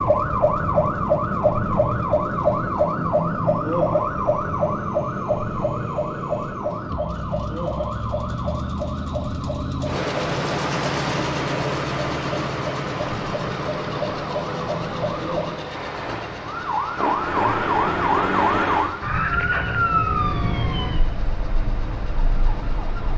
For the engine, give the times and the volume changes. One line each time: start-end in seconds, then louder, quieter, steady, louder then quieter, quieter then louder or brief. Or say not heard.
0.1-23.1 louder then quieter.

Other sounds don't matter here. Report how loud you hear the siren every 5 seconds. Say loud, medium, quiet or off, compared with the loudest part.
loud, medium, medium, loud, medium.